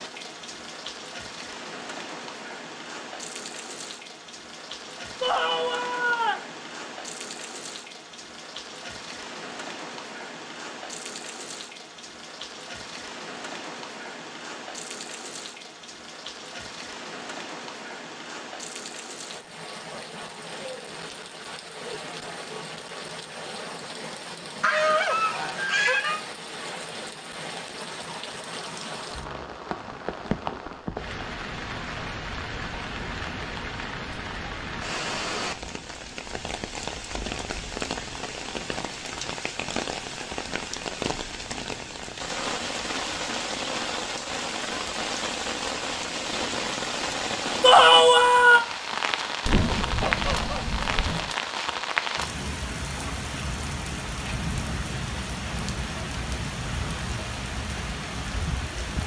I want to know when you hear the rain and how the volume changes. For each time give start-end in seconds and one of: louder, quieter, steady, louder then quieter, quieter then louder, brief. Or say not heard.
0.0-59.0 louder.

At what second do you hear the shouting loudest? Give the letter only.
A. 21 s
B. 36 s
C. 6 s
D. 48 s
D.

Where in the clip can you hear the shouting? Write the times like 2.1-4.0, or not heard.
5.2-6.4, 47.6-48.6.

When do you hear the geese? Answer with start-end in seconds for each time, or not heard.
24.6-26.2, 49.5-51.4.